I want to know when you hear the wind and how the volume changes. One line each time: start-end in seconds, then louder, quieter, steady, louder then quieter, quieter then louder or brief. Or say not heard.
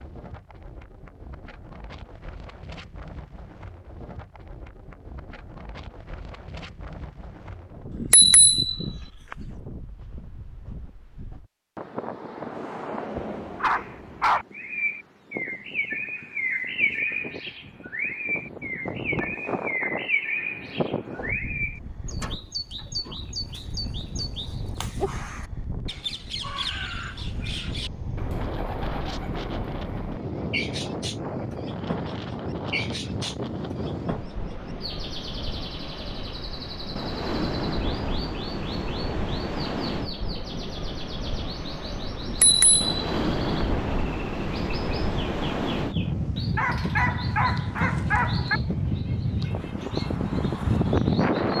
0.0-51.5 louder.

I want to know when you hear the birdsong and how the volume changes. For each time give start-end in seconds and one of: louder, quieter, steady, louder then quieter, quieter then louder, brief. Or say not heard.
14.5-51.5 quieter.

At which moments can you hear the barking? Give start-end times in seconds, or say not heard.
13.2-14.4, 46.5-48.6.